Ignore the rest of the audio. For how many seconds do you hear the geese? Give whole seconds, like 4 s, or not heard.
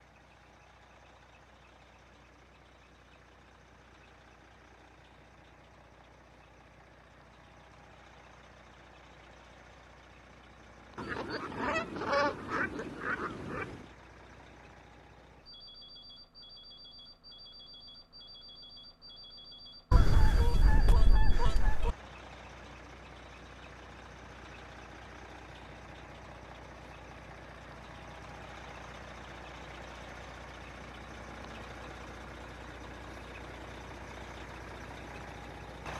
5 s.